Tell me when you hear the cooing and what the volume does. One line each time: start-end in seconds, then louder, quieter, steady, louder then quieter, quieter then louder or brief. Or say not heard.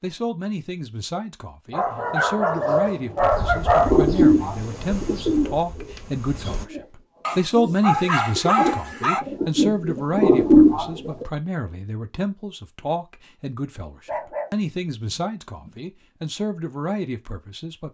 3.8-11.2 quieter then louder.